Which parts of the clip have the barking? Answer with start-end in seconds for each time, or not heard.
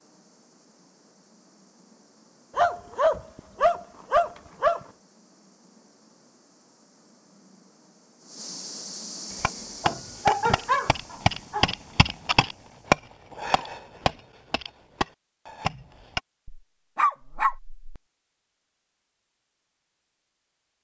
2.5-4.8, 9.8-11.7, 16.4-17.8.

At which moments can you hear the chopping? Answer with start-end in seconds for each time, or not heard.
9.3-16.2.